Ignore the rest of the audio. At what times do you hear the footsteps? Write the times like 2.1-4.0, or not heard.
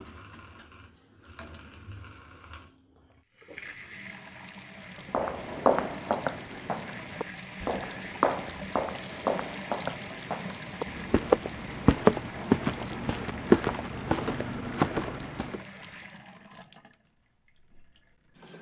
5.1-15.6.